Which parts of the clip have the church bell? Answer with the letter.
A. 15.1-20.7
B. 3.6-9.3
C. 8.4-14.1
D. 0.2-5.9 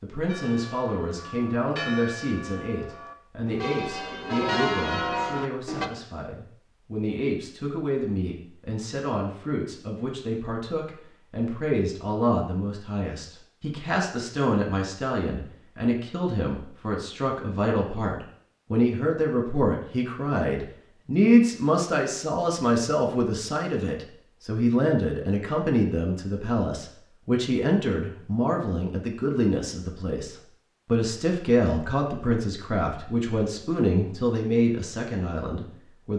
D.